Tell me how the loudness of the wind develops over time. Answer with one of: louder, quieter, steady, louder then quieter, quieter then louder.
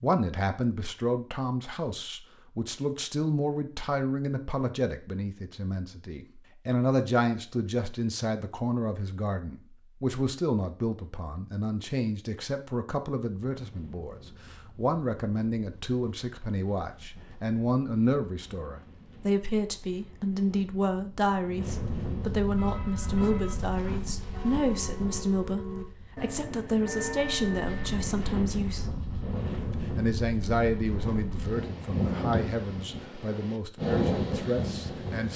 louder.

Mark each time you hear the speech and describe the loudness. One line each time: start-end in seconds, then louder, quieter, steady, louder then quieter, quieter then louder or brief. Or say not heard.
0.0-35.3 steady.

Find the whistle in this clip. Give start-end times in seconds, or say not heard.
not heard.